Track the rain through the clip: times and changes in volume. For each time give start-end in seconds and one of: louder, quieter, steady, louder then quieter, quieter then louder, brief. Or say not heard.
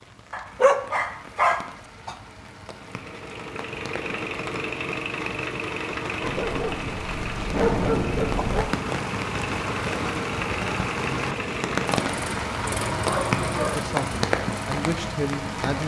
0.0-15.8 louder.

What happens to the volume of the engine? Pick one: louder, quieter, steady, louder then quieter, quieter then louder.
steady.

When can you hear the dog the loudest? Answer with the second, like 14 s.
1 s.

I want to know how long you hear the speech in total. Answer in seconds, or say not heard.
2 s.